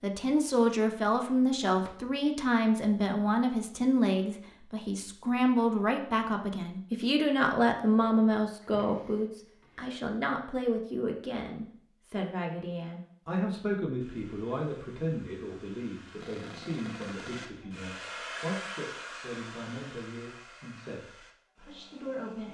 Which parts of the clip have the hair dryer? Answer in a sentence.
You can hear the hair dryer from 14.0 to 22.4 s.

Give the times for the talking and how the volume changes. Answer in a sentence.
The talking can be heard from 0.0 to 22.4 s, getting quieter.